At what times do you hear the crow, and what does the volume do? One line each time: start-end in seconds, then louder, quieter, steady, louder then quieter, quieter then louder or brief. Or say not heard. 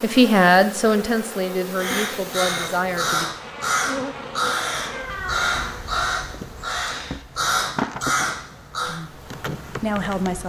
1.8-9.0 steady.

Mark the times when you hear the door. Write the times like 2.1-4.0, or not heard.
4.9-5.8.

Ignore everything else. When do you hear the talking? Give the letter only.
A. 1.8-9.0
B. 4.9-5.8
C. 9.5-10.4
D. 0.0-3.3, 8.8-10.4
D.